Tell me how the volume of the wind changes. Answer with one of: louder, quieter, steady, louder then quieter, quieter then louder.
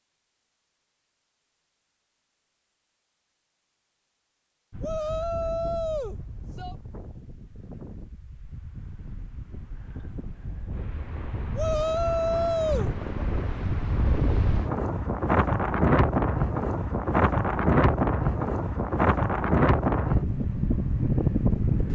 louder.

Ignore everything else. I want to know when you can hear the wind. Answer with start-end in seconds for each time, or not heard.
4.7-21.9.